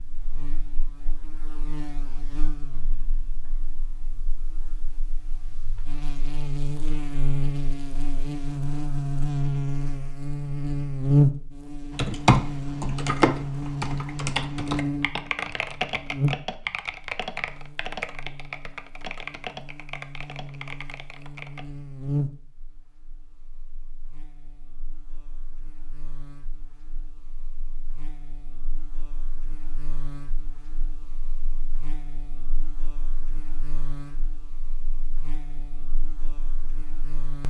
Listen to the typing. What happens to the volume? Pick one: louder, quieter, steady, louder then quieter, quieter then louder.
quieter.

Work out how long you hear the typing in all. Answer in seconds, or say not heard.
10 s.